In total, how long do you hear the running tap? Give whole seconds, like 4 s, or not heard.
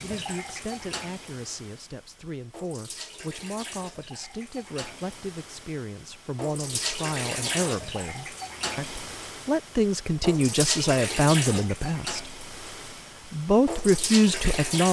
15 s.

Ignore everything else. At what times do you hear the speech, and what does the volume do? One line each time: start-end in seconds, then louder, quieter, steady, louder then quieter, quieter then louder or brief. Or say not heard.
0.0-12.2 louder
13.3-14.8 brief.